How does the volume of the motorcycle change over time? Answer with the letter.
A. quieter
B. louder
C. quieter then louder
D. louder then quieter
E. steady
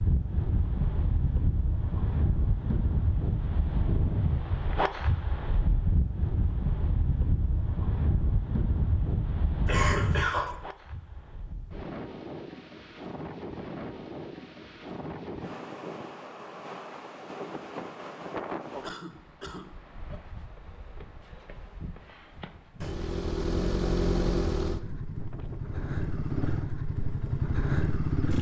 C.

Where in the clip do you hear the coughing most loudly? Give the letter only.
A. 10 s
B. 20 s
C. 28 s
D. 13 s
A.